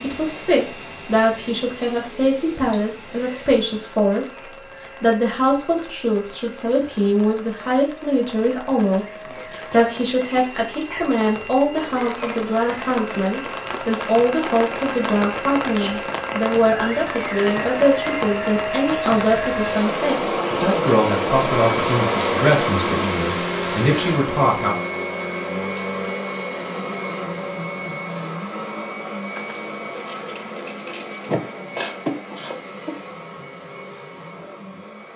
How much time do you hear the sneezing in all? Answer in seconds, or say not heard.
3 s.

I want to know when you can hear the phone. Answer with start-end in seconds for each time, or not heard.
not heard.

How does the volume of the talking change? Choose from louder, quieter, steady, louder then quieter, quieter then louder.
steady.